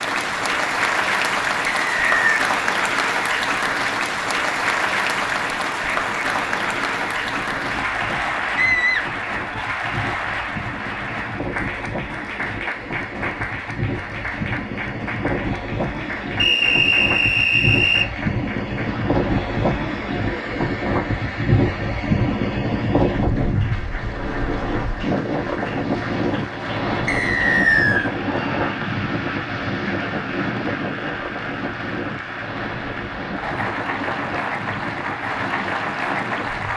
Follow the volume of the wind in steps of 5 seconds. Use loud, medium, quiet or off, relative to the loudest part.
quiet, quiet, medium, loud, loud, loud, medium, medium.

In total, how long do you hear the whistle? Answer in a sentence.
You can hear the whistle for 3 seconds altogether.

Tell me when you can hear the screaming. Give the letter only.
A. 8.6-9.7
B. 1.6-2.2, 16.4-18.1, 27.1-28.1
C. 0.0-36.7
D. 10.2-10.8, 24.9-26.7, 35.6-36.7
A.